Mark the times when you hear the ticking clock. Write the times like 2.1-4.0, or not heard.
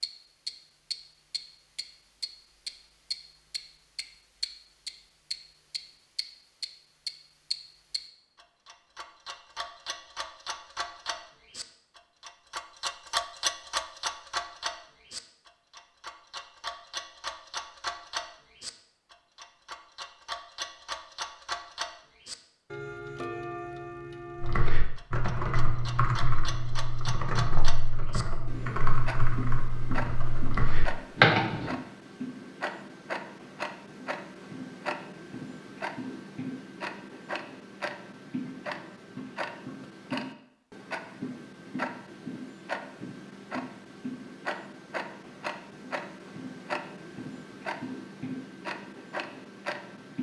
0.0-50.1.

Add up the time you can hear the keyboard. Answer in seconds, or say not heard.
7 s.